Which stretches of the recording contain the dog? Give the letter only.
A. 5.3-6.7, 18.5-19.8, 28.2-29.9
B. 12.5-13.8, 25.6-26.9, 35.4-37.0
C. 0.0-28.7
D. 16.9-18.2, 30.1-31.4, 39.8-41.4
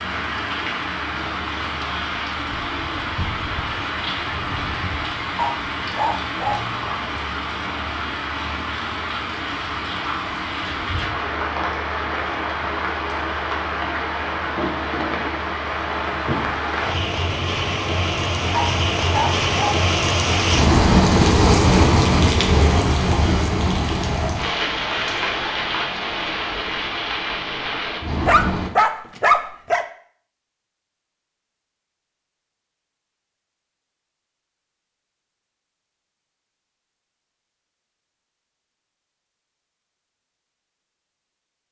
A.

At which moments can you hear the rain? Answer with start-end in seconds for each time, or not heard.
0.0-28.7.